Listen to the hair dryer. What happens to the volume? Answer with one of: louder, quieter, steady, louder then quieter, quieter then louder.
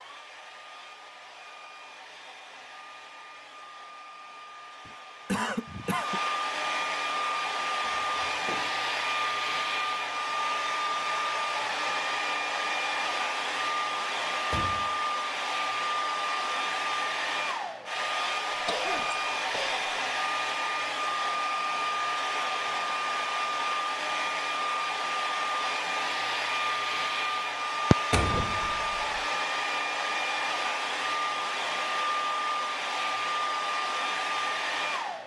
louder.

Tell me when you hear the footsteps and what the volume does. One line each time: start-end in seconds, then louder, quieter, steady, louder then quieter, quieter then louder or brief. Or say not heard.
not heard.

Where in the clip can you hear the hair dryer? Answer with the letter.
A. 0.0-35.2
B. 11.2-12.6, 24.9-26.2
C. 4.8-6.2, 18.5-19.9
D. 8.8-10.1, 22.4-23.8
A.